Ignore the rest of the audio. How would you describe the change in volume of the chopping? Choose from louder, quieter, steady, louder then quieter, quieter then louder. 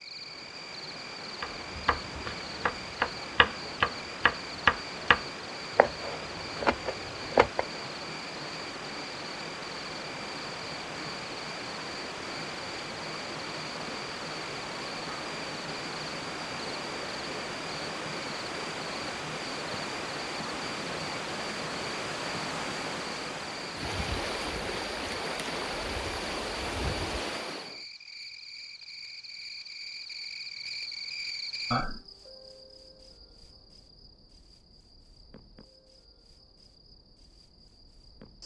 louder then quieter.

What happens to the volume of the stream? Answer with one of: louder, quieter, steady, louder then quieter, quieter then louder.
louder.